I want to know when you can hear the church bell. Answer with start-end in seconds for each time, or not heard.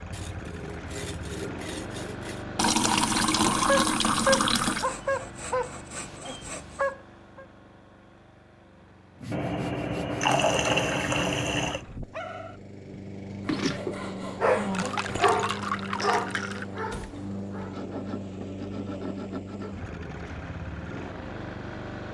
not heard.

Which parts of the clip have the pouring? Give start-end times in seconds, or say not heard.
2.5-4.9, 9.3-11.8, 14.7-16.6.